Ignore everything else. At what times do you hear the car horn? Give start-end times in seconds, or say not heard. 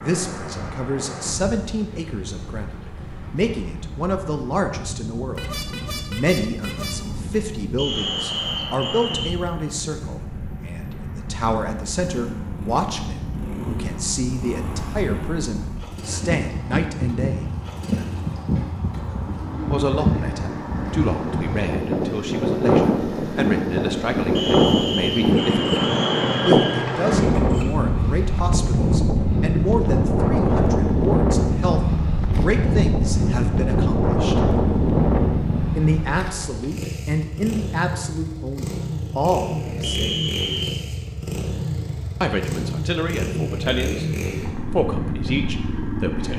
5.3-7.0.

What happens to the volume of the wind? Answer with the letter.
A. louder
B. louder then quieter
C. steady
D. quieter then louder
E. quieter
A.